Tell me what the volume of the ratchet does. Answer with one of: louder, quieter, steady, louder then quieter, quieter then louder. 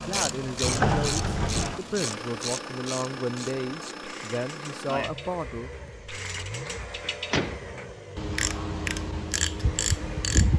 quieter then louder.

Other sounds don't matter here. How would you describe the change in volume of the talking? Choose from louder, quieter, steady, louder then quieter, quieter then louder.
steady.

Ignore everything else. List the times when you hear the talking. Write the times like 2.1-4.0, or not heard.
0.0-5.7.